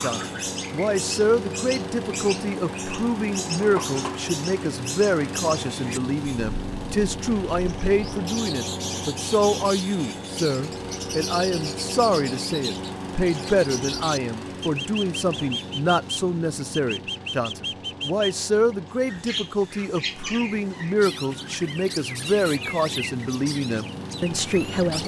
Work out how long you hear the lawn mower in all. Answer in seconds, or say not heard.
25 s.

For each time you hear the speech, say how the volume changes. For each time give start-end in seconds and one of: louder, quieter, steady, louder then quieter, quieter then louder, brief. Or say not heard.
0.0-25.0 steady.